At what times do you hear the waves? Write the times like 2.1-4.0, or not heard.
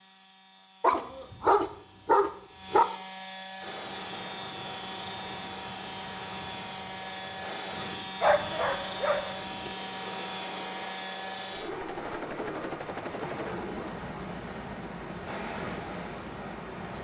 3.6-16.9.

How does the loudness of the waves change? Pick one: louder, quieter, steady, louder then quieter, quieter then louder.
steady.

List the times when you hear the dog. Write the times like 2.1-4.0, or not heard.
0.8-2.9, 8.2-9.7, 11.5-14.1.